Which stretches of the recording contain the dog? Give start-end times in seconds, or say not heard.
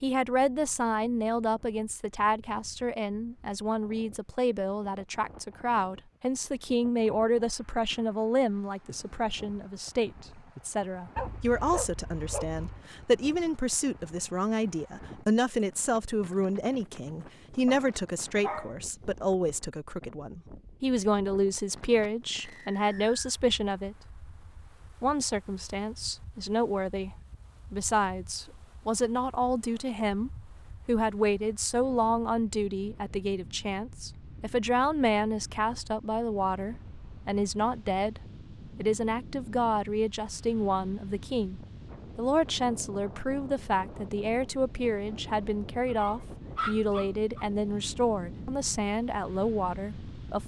11.2-12.8, 17.6-18.8, 45.9-47.5.